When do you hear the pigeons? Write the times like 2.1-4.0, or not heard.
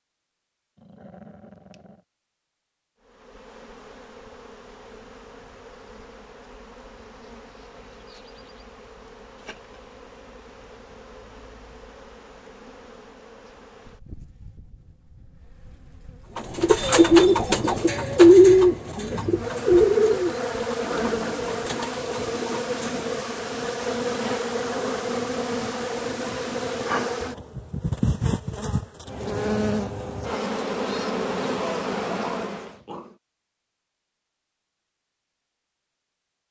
16.4-23.1.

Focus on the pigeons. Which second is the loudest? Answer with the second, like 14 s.
18 s.